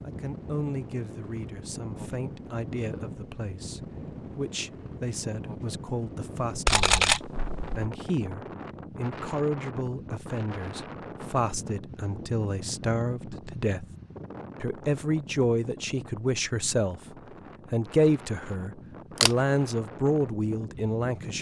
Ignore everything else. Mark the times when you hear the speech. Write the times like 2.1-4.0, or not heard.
0.0-13.8, 14.6-17.0, 17.7-21.3.